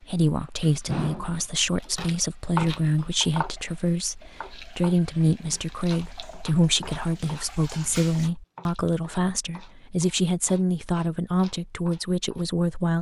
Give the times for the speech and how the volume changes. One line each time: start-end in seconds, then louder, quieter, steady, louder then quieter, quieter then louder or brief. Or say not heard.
0.0-12.9 steady.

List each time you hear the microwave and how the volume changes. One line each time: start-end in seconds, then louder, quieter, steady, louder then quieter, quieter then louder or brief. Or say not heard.
not heard.